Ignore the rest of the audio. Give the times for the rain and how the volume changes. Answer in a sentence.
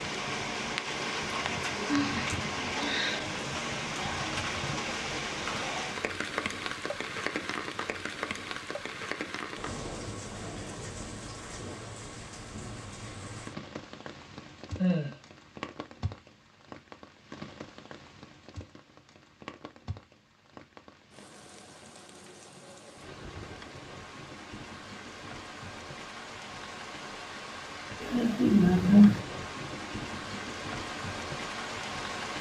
You can hear the rain from 0.0 to 32.3 s, getting quieter then louder.